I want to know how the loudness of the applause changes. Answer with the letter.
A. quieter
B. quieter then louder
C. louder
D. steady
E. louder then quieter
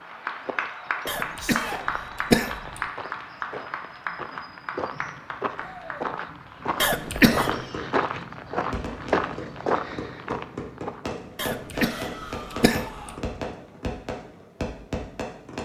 A.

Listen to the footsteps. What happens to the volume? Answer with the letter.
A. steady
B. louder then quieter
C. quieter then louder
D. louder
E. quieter
D.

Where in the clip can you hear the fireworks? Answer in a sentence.
You can hear the fireworks from 7.1 to 15.5 s.